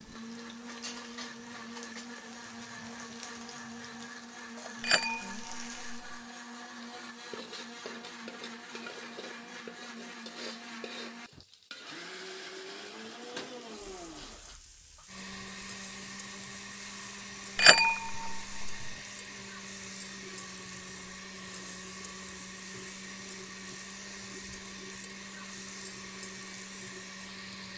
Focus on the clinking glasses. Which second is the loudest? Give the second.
18 s.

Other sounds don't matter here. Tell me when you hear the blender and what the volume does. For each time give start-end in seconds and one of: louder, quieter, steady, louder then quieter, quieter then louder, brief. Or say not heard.
0.0-27.7 steady.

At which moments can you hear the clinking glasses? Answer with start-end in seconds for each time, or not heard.
4.8-6.2, 17.6-18.9.